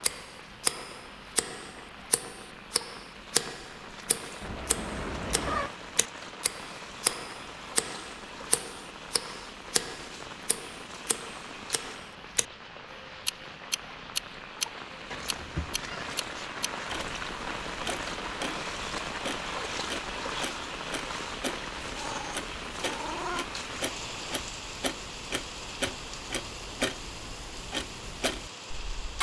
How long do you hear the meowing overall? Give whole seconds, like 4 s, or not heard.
4 s.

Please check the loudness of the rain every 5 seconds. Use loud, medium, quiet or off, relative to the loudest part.
medium, medium, medium, loud, loud, medium.